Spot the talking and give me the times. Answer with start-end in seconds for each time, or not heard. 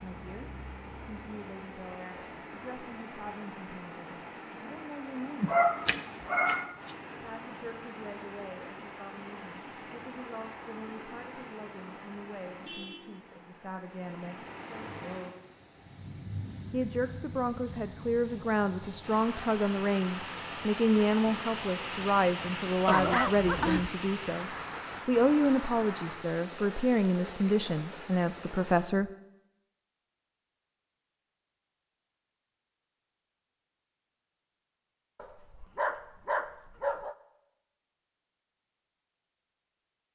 0.0-5.5, 7.2-14.4, 16.7-29.1.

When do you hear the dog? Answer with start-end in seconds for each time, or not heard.
5.4-6.7, 22.9-23.9, 35.1-37.1.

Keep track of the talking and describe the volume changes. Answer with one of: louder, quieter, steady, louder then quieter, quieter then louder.
louder.